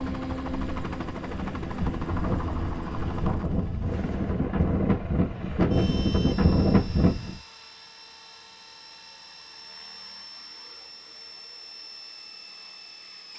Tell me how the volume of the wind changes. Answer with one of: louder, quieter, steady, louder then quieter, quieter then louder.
louder.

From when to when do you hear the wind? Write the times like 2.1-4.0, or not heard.
0.0-7.4.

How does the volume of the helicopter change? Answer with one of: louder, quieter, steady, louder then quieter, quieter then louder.
quieter.